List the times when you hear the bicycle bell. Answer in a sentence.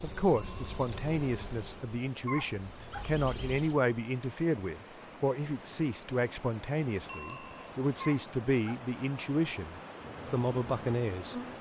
You can hear the bicycle bell from 0.3 to 0.8 s and from 7.0 to 7.7 s.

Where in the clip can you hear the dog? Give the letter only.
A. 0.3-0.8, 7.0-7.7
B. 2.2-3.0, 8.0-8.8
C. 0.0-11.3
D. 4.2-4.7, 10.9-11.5
B.